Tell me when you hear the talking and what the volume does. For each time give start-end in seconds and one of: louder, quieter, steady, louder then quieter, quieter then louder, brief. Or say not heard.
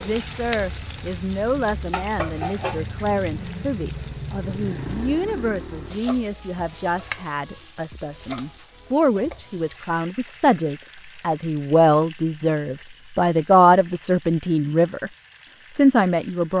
0.0-15.1 louder
15.7-16.5 brief.